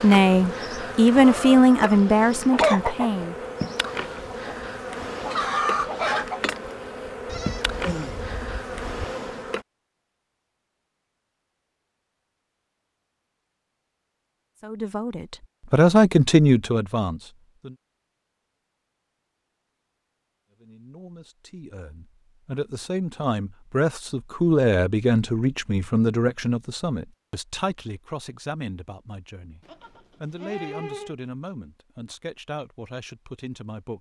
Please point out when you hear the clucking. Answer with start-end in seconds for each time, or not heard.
0.6-6.4.